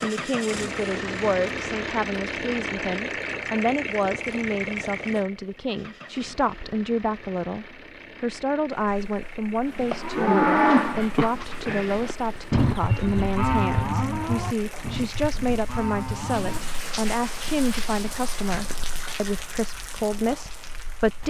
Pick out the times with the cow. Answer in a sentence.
You can hear the cow from 9.7 to 16.6 s.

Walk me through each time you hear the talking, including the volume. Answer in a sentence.
The talking can be heard from 0.0 to 21.2 s, at a steady volume.